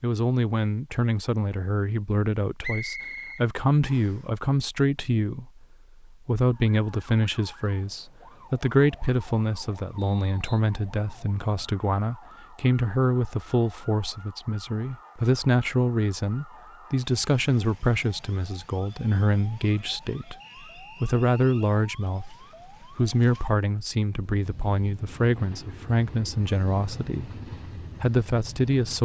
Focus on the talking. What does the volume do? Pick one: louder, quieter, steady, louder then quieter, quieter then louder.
steady.